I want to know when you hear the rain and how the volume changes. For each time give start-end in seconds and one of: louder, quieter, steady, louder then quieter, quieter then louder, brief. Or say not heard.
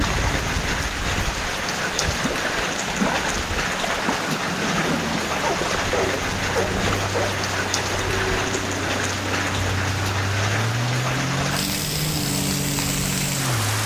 0.0-13.8 steady.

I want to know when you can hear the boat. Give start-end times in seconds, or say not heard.
0.0-13.8.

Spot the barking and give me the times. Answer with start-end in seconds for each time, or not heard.
5.4-7.3.